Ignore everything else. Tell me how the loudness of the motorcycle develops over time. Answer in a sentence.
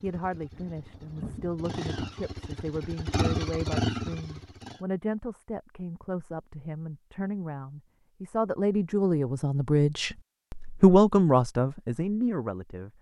The volume of the motorcycle goes up.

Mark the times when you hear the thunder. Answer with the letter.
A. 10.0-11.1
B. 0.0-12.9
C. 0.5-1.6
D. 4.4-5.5
C.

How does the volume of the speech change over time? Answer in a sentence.
The loudness of the speech goes up.